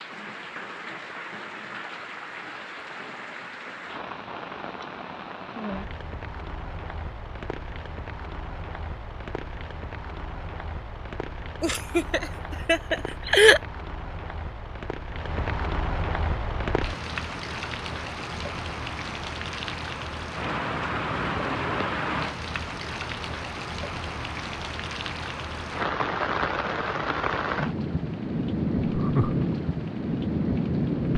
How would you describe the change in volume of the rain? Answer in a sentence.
The loudness of the rain goes up.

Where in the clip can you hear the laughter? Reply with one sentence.
You can hear the laughter from 11.6 to 13.6 s and from 28.9 to 29.4 s.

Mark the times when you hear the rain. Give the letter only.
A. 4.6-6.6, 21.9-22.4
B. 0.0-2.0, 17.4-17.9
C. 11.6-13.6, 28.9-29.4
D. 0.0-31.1
D.